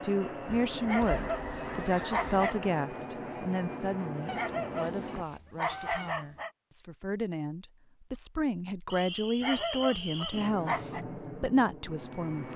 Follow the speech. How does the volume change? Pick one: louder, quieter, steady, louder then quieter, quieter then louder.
quieter then louder.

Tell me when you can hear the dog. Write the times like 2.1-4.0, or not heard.
0.8-2.7, 4.3-6.5, 9.4-11.1.